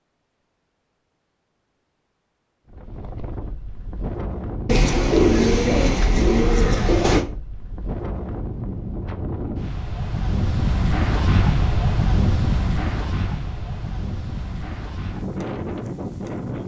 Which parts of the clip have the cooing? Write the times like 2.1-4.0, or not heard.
4.7-7.2.